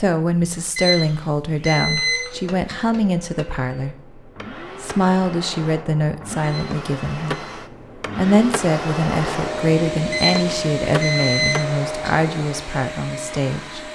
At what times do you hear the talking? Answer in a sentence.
You can hear the talking from 0.0 to 4.0 s, from 4.8 to 7.5 s and from 8.2 to 13.8 s.